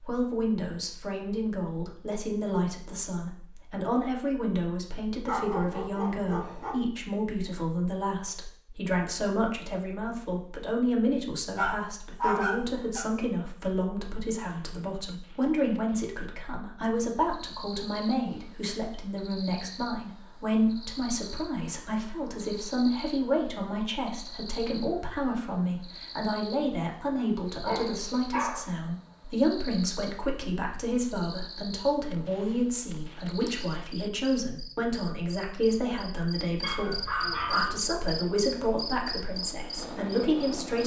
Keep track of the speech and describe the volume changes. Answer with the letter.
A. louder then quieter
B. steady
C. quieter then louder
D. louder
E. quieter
B.